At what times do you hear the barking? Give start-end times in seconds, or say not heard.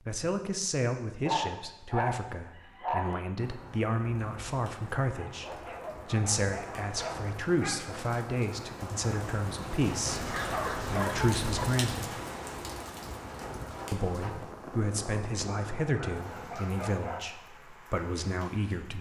1.2-3.2, 5.1-7.8, 10.2-11.7, 15.4-17.2.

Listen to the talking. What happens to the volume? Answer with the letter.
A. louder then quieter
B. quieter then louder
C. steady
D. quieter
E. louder
C.